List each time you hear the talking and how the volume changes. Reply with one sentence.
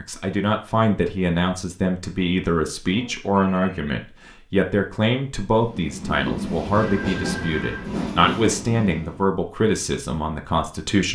You can hear the talking from 0.0 to 11.1 s, at a steady volume.